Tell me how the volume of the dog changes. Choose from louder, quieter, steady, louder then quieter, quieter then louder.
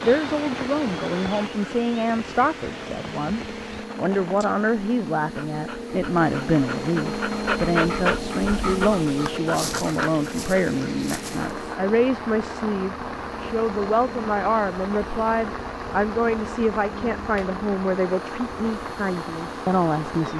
louder then quieter.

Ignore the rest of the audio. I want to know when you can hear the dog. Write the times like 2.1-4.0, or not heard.
5.3-11.8.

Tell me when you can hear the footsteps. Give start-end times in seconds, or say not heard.
not heard.